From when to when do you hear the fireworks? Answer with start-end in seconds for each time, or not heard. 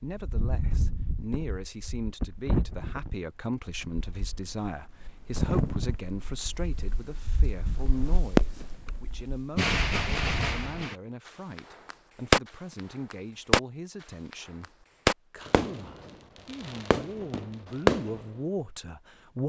8.1-13.6, 14.3-18.2.